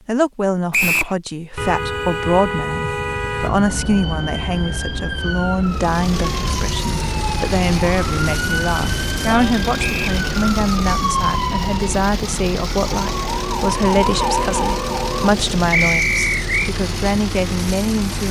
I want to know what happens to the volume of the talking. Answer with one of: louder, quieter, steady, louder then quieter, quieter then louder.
steady.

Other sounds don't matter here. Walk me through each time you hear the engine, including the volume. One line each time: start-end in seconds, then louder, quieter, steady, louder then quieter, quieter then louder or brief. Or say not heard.
5.7-18.2 steady.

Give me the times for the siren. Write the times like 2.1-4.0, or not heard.
3.4-15.3.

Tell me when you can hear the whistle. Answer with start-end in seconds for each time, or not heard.
0.7-1.1, 9.8-10.2, 15.7-16.7.